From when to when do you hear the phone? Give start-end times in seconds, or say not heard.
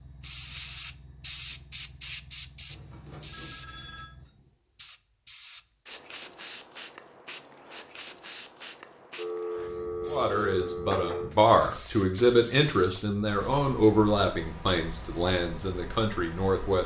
2.7-4.0, 9.2-11.3.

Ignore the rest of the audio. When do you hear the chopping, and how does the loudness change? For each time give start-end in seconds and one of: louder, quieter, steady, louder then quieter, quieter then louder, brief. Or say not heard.
not heard.